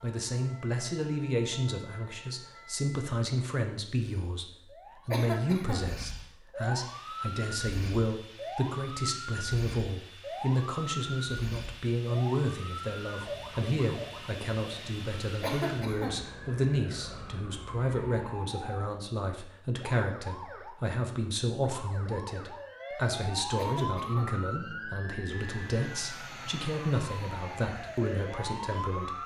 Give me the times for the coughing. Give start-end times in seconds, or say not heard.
5.1-5.9, 15.4-16.2, 23.6-24.4.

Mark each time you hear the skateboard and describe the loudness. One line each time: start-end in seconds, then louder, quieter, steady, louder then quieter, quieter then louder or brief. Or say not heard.
not heard.